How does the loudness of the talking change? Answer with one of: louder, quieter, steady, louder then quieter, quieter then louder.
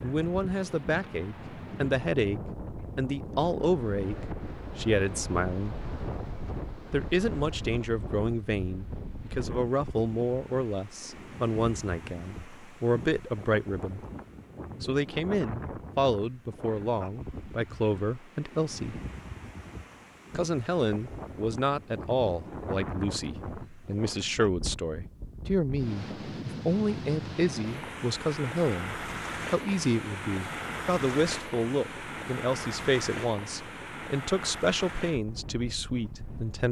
steady.